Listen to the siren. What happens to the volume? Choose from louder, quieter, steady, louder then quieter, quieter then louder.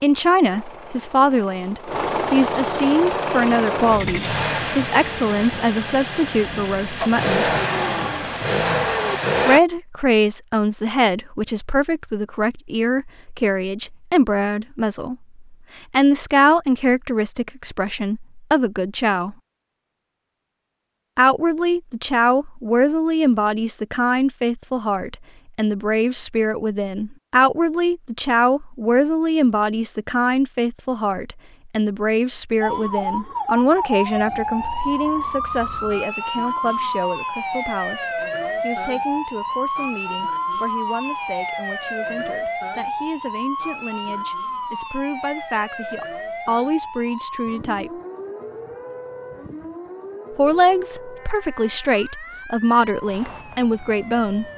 quieter.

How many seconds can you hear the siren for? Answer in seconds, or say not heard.
22 s.